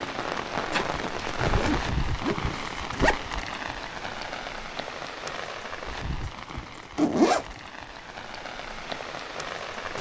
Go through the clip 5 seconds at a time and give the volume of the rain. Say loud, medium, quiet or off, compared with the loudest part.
loud, medium.